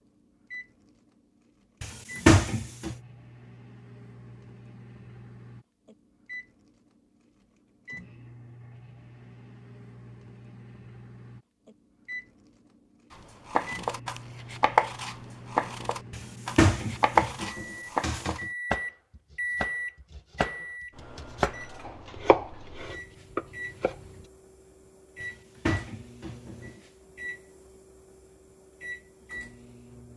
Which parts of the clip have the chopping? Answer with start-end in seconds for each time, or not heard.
13.5-23.9.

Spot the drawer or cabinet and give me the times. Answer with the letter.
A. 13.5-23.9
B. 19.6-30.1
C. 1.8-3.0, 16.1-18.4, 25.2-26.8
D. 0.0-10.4
C.